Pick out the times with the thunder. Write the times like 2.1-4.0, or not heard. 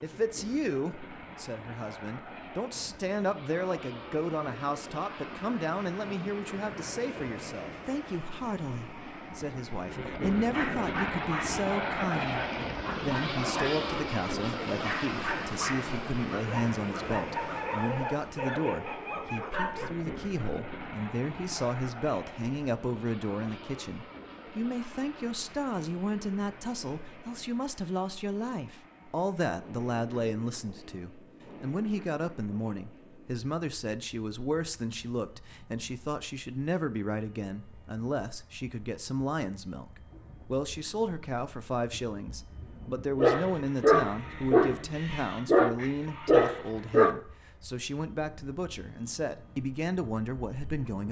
not heard.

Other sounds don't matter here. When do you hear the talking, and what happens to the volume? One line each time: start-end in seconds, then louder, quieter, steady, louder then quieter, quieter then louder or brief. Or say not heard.
0.0-51.0 steady.